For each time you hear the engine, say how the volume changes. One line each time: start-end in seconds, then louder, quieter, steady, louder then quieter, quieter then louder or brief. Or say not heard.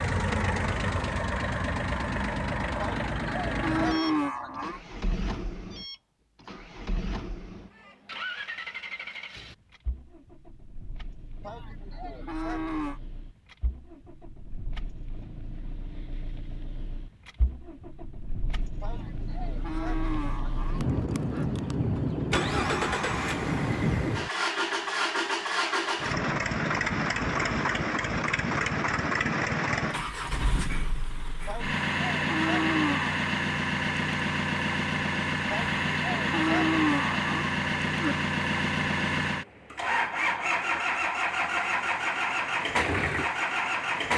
0.0-44.1 quieter then louder.